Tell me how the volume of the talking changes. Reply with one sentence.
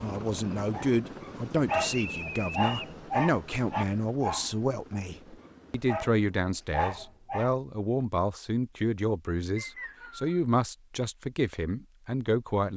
The loudness of the talking stays about the same.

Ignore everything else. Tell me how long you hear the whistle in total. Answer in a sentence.
You can hear the whistle for 2 seconds altogether.